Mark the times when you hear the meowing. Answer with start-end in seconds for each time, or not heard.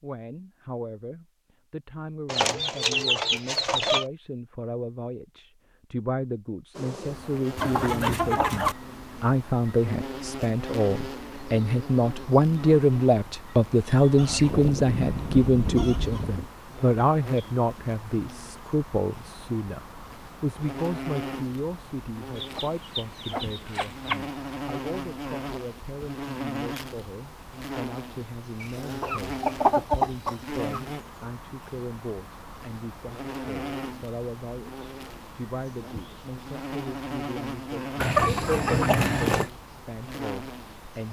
not heard.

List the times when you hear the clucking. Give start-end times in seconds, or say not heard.
2.2-4.0, 7.5-8.8, 14.2-16.5, 22.4-24.2, 28.6-30.8, 38.0-39.5.